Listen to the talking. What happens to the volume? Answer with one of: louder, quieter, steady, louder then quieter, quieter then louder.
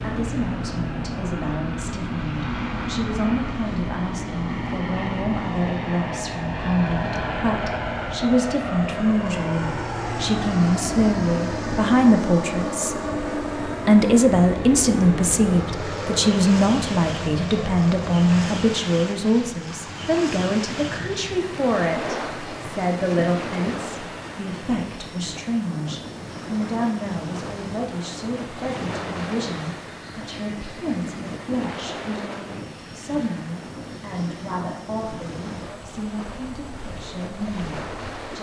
louder then quieter.